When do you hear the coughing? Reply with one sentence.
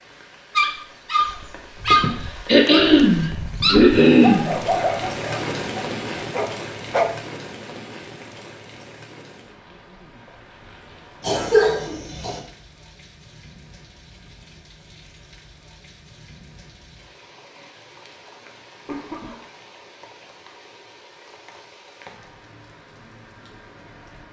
The coughing can be heard from 1.9 to 4.5 s, from 11.2 to 12.4 s and from 18.9 to 19.4 s.